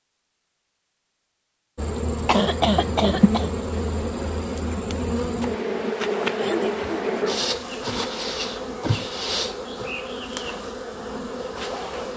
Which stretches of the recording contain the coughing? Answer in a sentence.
You can hear the coughing from 2.2 to 3.5 s.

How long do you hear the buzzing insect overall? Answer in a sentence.
The buzzing insect can be heard for 10 seconds in total.